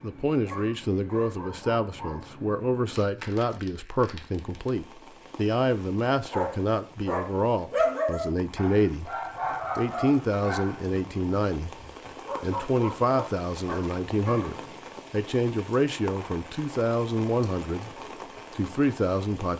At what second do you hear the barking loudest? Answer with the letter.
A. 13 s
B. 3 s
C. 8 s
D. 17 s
C.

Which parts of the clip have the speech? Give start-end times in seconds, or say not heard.
0.0-9.1, 9.8-11.8, 12.4-17.9, 18.5-19.5.